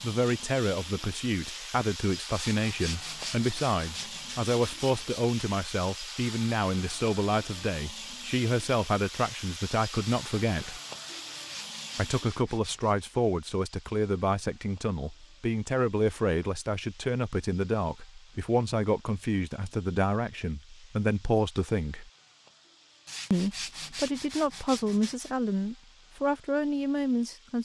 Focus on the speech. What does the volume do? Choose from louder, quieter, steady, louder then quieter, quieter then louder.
steady.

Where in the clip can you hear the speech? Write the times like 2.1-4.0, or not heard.
0.0-10.8, 11.9-22.1, 23.3-27.5.